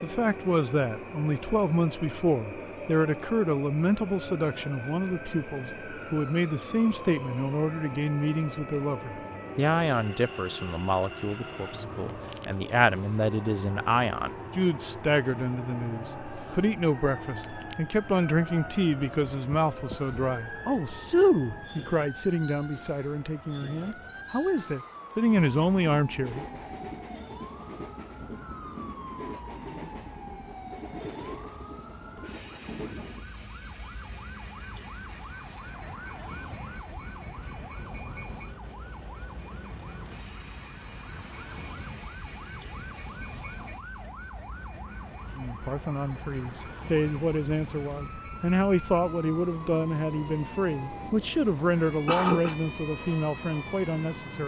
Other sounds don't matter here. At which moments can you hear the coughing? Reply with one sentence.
The coughing can be heard from 51.4 to 52.5 s.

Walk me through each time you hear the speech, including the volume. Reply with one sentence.
You can hear the speech from 0.0 to 26.4 s, at a steady volume; and from 45.4 to 54.4 s, at a steady volume.